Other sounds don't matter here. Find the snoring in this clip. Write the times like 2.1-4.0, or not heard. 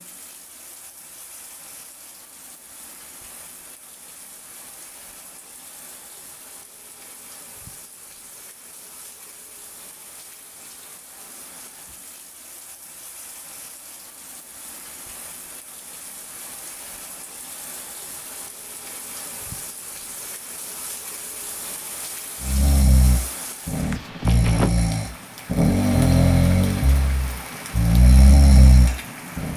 22.4-29.5.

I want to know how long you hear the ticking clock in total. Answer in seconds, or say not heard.
not heard.